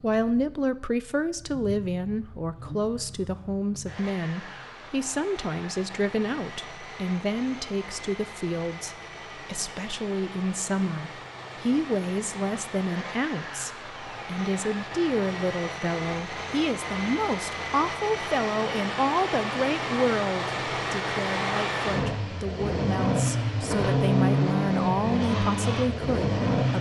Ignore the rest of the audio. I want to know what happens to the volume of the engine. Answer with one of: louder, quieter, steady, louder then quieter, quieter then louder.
louder.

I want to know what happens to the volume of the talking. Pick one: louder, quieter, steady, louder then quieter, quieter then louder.
steady.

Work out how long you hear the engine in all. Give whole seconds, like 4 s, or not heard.
27 s.